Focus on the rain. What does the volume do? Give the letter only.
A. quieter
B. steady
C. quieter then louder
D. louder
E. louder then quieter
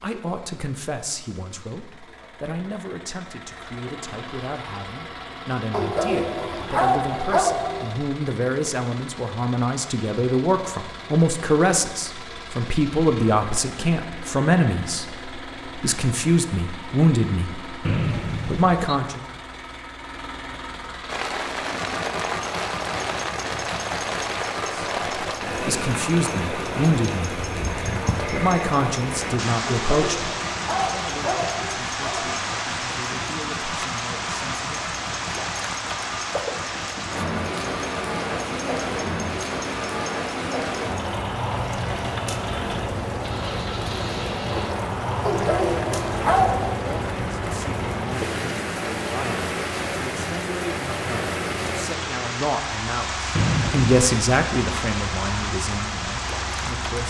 B.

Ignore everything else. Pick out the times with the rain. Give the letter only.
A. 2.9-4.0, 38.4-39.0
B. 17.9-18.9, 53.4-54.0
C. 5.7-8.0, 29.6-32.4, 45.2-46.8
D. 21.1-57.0
D.